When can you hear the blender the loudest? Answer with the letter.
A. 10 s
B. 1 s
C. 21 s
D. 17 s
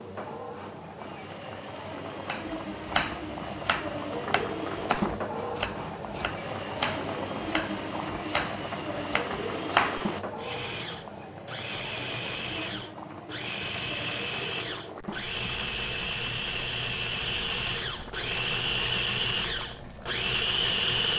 C.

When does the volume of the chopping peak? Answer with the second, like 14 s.
10 s.